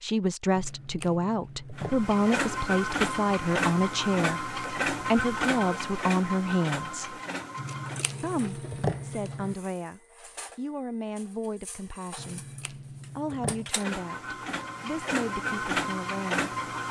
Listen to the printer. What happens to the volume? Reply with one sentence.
The loudness of the printer goes down, then up.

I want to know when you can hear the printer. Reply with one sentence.
You can hear the printer from 1.8 to 16.8 s.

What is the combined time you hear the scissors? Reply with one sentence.
The scissors can be heard for 5 seconds in total.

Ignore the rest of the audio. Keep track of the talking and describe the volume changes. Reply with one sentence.
The volume of the talking goes down.